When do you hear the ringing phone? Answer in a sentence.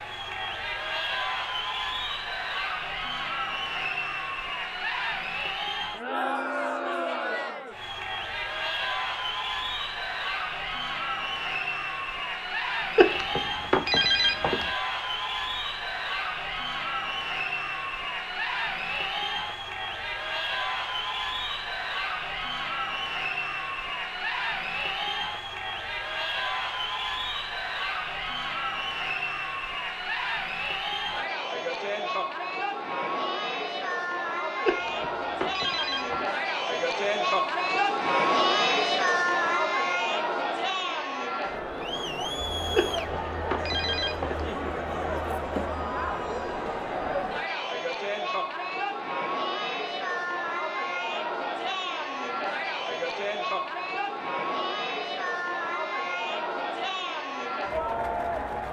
The ringing phone can be heard from 12.9 to 14.7 s, from 34.6 to 36.2 s and from 42.8 to 44.5 s.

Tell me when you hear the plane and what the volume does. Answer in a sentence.
You can't hear the plane here.